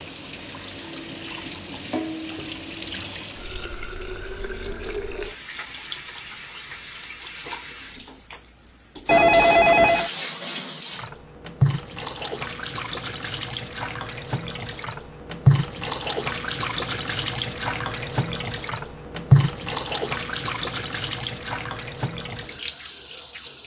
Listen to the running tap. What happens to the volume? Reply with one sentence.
The loudness of the running tap goes up.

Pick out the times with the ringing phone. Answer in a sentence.
The ringing phone can be heard from 9.1 to 10.1 s.